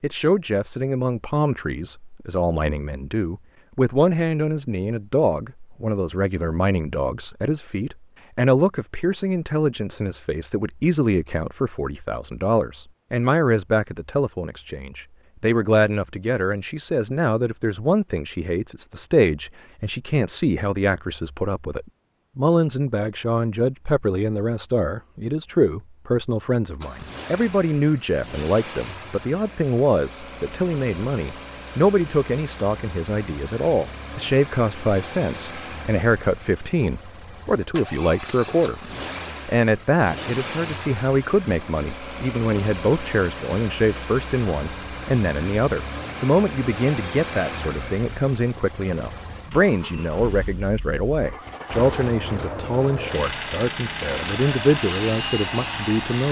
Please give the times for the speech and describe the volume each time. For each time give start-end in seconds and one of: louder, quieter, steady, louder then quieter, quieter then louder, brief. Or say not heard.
0.0-38.8 steady
39.5-56.2 steady.